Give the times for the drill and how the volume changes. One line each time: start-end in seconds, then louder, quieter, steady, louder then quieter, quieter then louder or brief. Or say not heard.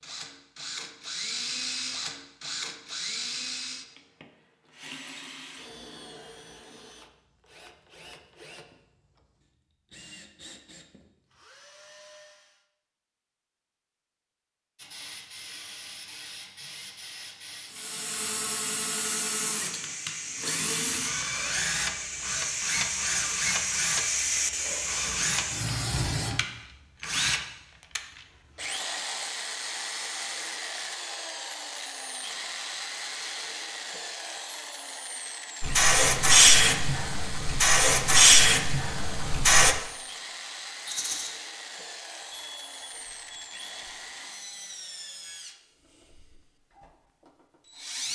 0.0-12.7 quieter
17.7-48.1 quieter.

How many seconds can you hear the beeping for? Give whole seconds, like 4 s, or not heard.
2 s.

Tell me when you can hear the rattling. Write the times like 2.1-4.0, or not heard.
40.9-41.3.